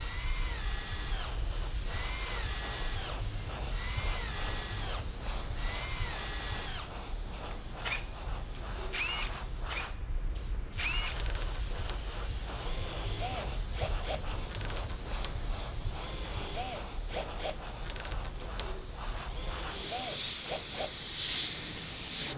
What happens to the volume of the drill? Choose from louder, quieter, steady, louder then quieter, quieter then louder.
steady.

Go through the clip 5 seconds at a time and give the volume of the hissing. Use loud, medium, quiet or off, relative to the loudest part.
medium, medium, medium, medium, loud.